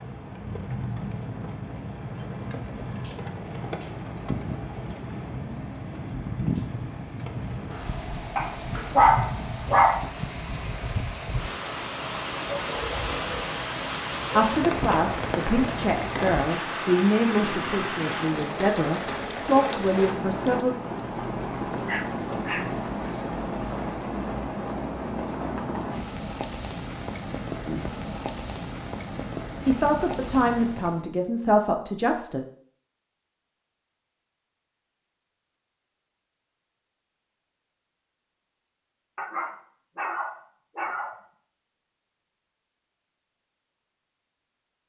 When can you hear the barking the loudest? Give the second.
9 s.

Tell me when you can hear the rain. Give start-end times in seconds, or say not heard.
0.0-31.1.